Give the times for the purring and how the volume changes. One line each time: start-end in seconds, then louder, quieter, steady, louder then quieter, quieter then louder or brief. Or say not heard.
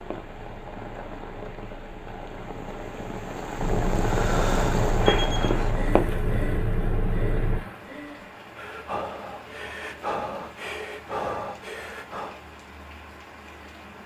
0.0-7.6 louder.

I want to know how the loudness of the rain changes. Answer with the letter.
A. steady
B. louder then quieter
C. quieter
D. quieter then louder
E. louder
B.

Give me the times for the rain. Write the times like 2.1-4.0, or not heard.
0.0-14.0.